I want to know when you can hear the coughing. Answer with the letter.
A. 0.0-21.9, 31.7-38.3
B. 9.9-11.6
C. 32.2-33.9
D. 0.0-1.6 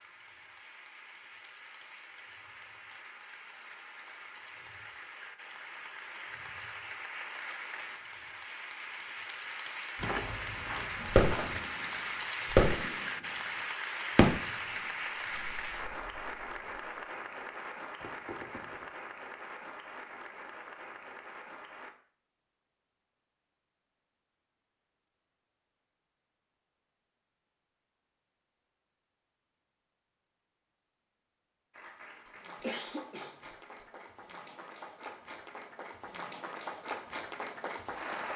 C.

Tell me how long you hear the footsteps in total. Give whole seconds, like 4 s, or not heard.
2 s.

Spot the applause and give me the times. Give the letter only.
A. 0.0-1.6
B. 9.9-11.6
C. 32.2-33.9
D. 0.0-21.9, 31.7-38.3
D.